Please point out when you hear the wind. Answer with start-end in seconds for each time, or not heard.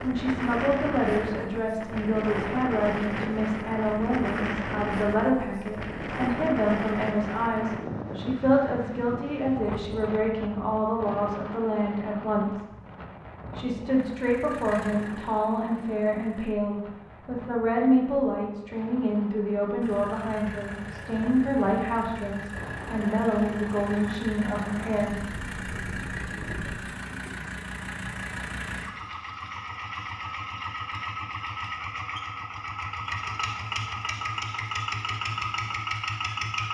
0.0-26.8.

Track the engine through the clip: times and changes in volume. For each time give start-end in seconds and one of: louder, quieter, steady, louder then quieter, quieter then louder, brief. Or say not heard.
14.1-16.6 brief
19.8-36.6 louder.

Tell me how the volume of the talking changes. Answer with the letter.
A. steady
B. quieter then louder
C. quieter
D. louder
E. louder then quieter
A.